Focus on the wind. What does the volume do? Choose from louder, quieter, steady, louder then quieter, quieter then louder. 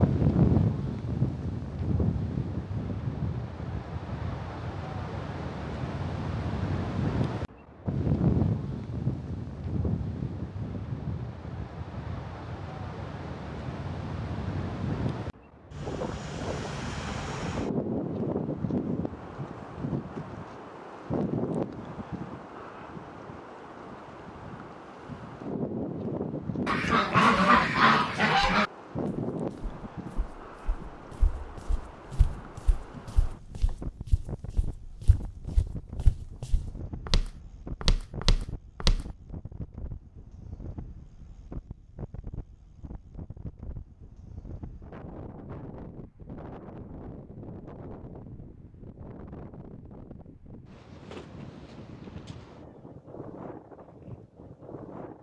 quieter.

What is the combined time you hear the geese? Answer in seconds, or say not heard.
2 s.